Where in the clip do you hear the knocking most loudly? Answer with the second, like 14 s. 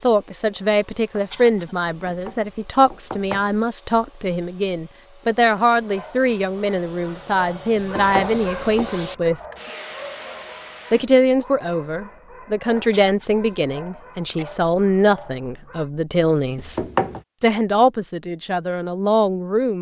17 s.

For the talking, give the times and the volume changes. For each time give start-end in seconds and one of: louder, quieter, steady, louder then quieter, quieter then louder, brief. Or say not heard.
0.0-9.4 steady
10.9-19.7 steady.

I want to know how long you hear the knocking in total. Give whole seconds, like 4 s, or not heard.
3 s.